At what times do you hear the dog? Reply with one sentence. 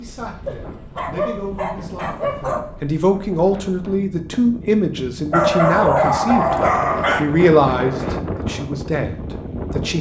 You can hear the dog from 0.5 to 2.8 s and from 5.3 to 7.2 s.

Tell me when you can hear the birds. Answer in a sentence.
You can't hear the birds here.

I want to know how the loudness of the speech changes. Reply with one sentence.
The volume of the speech goes up, then down.